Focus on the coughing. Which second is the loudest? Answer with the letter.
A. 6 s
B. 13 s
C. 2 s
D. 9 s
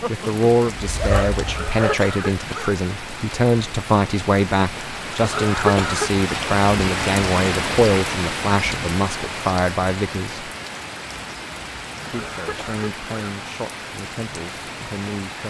A.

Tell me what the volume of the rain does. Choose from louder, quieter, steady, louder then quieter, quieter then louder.
louder then quieter.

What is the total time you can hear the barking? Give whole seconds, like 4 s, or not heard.
2 s.